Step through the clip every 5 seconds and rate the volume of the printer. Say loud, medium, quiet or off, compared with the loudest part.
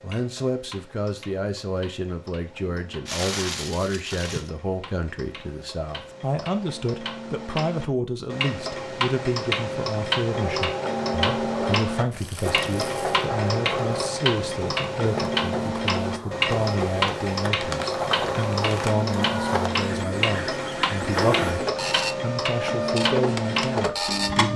off, off, loud, loud, loud.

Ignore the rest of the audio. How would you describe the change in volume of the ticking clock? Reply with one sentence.
The volume of the ticking clock goes up.